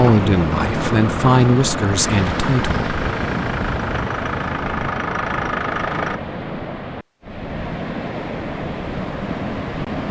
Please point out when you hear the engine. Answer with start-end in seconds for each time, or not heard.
0.0-6.2.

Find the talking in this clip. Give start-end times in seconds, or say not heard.
0.0-3.0.